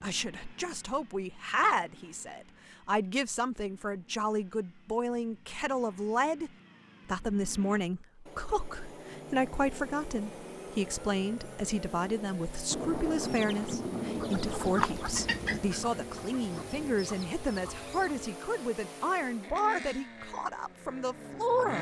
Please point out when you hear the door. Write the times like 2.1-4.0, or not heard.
not heard.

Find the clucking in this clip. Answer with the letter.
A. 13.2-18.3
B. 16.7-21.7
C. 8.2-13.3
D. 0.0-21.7
A.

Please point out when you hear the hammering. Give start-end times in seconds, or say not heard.
not heard.